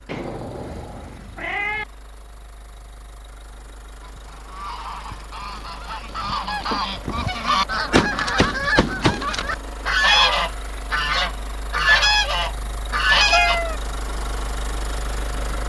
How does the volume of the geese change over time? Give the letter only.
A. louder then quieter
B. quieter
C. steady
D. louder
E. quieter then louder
D.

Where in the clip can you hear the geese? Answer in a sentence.
You can hear the geese from 4.0 to 13.6 s.